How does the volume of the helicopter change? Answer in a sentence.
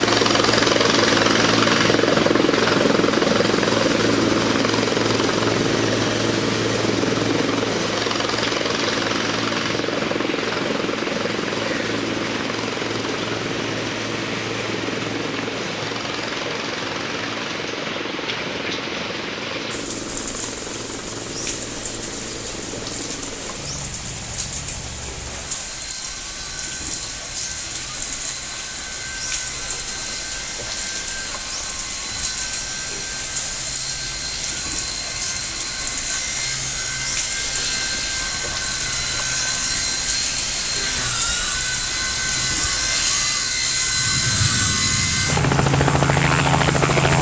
The loudness of the helicopter goes down, then up.